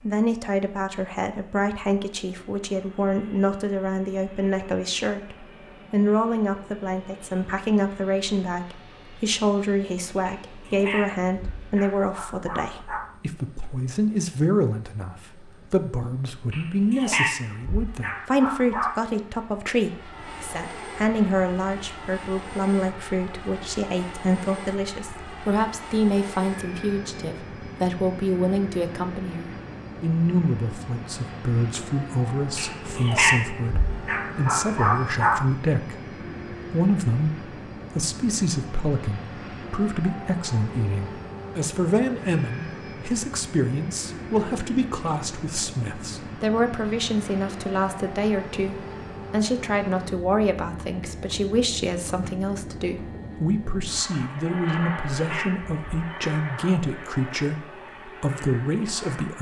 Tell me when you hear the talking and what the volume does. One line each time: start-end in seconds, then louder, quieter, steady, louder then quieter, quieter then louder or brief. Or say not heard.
0.0-59.3 steady.